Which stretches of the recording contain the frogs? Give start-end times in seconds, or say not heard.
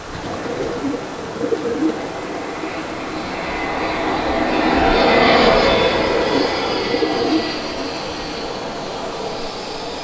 not heard.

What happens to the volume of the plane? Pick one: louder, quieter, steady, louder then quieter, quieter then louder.
louder then quieter.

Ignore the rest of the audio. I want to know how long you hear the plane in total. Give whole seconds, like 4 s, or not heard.
10 s.